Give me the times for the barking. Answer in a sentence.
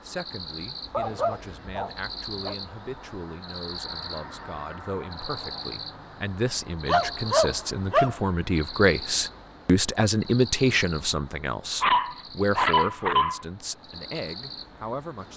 The barking can be heard from 0.9 to 2.5 s, from 6.8 to 8.2 s and from 11.8 to 13.4 s.